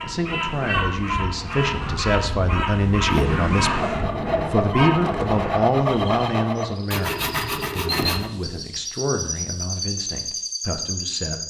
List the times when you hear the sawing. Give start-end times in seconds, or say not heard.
3.0-8.3.